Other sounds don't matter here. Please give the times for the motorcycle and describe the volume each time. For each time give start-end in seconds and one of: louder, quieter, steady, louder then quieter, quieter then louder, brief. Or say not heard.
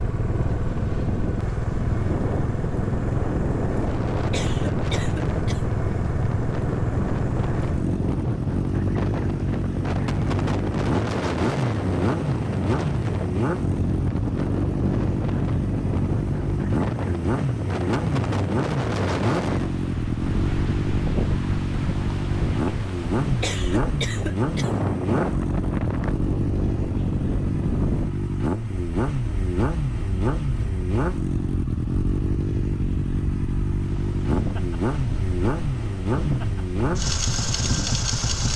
0.0-38.5 steady.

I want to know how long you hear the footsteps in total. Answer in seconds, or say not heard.
not heard.